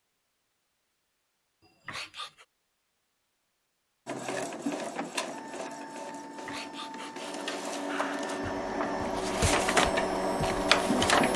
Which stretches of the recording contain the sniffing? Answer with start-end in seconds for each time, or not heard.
1.6-2.5, 6.2-8.6.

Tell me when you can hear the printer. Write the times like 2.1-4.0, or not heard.
4.0-11.3.